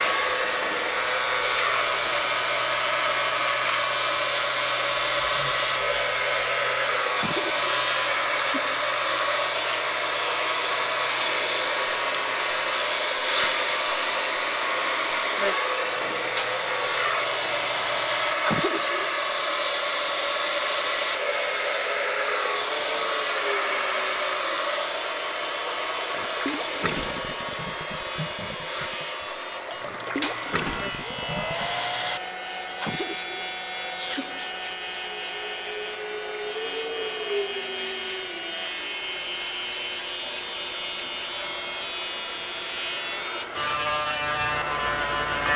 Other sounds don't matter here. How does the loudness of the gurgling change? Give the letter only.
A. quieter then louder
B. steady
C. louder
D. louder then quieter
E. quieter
A.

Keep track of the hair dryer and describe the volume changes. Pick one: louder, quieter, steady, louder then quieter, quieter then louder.
quieter.